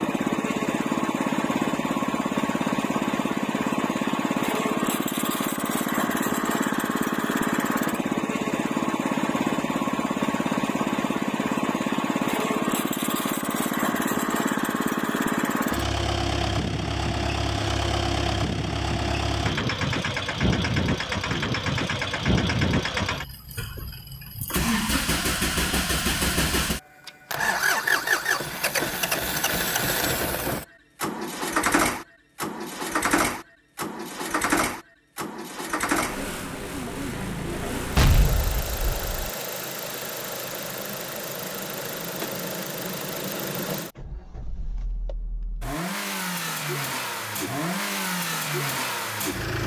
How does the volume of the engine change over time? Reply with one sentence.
The loudness of the engine goes down.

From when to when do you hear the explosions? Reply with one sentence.
The explosions can be heard from 38.0 to 39.3 s.